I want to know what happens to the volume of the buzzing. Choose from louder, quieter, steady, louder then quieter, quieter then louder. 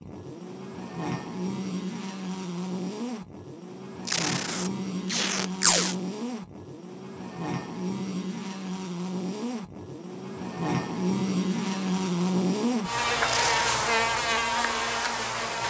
louder.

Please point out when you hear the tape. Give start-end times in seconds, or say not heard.
4.0-6.0, 13.2-13.8.